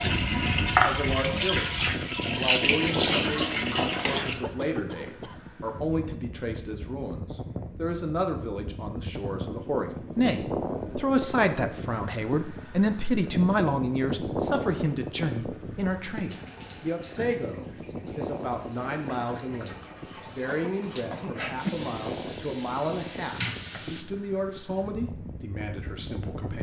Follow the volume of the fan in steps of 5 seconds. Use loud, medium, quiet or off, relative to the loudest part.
loud, medium, loud, medium, medium, medium.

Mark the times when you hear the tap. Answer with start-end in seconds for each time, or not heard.
0.0-4.3, 16.3-24.1.